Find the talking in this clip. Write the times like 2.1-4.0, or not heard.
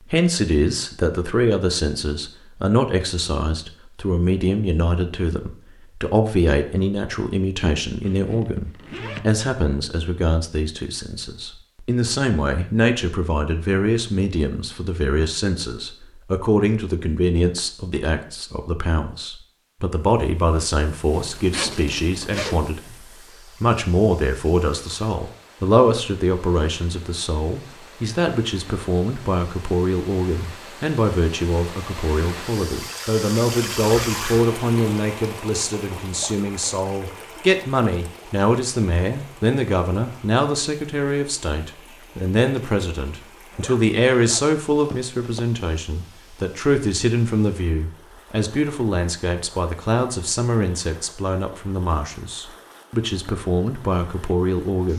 0.1-22.9, 23.6-54.9.